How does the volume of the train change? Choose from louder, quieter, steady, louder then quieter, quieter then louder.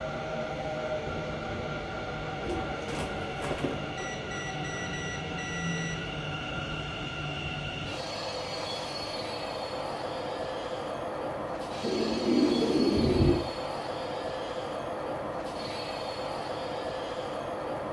steady.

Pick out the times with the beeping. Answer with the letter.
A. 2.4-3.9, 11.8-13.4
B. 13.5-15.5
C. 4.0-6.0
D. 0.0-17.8
C.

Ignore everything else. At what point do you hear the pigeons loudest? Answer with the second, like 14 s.
12 s.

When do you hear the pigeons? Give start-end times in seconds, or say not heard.
2.4-3.9, 11.8-13.4.